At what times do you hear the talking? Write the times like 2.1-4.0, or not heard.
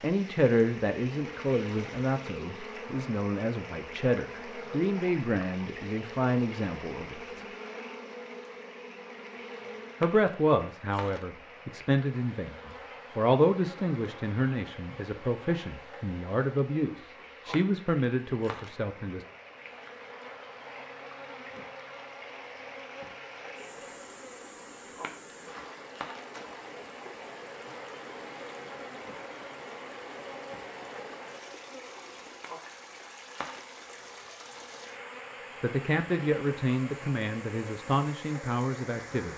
0.0-7.5, 10.0-19.2, 35.6-39.3.